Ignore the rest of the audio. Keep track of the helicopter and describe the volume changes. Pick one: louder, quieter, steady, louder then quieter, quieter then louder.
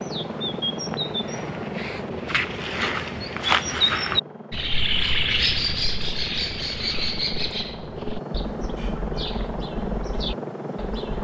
quieter then louder.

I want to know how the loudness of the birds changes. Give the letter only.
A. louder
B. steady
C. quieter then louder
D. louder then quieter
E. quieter
D.